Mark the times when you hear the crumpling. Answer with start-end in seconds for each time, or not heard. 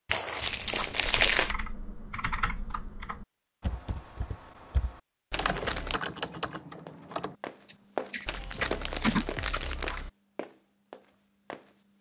0.1-1.6, 5.3-6.0, 8.2-10.1.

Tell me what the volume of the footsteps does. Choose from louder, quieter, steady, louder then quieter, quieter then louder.
quieter.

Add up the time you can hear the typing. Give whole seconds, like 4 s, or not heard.
9 s.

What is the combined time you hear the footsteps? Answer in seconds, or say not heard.
5 s.